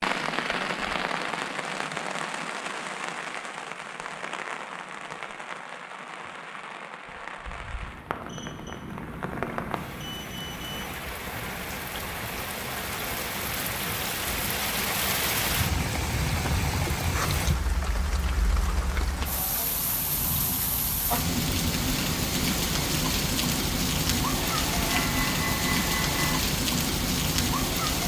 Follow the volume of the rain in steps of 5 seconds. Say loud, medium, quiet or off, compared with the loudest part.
medium, medium, medium, loud, loud, loud.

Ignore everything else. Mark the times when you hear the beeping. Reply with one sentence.
The beeping can be heard from 8.2 to 10.8 s and from 24.4 to 26.4 s.